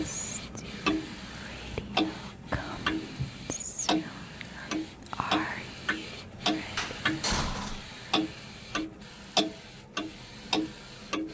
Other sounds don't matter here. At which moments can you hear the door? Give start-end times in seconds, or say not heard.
6.8-7.8.